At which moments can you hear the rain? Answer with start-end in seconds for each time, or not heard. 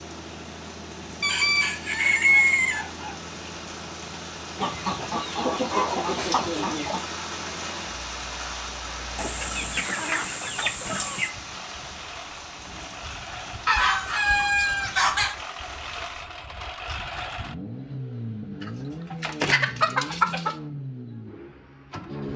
0.0-16.2.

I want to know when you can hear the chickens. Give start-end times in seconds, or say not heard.
1.2-2.9, 4.5-7.0, 9.2-11.3, 13.7-15.3, 18.6-20.6.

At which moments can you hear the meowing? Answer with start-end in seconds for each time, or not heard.
not heard.